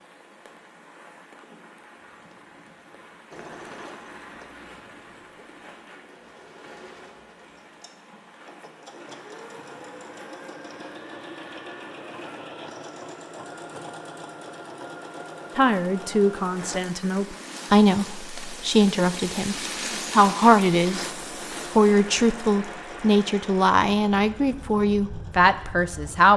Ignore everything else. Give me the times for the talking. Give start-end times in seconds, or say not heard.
15.6-21.1, 21.7-26.3.